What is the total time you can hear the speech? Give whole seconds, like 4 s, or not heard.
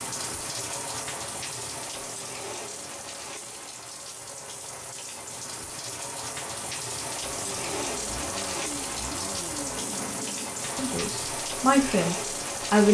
2 s.